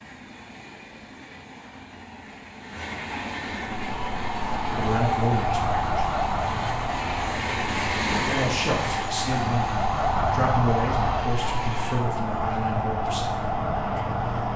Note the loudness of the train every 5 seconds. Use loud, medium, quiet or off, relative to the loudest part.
medium, loud, loud.